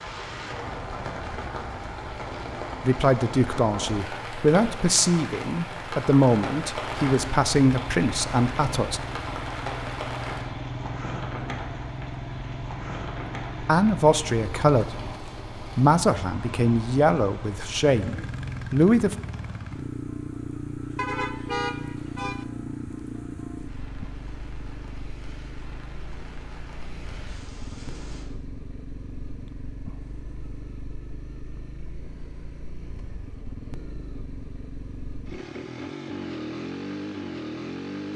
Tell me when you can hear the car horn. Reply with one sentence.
The car horn can be heard from 20.9 to 22.4 s.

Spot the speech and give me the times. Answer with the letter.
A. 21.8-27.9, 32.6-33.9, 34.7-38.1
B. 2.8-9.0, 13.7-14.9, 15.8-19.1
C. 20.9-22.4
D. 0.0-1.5
B.